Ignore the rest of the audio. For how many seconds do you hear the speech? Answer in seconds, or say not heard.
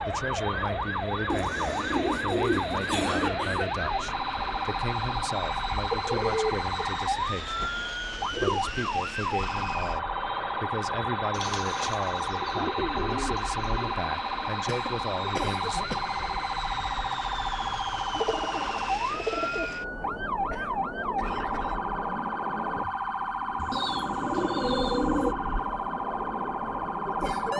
16 s.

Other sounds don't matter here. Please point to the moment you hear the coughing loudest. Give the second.
3 s.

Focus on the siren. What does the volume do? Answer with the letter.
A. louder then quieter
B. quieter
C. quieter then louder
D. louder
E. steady
E.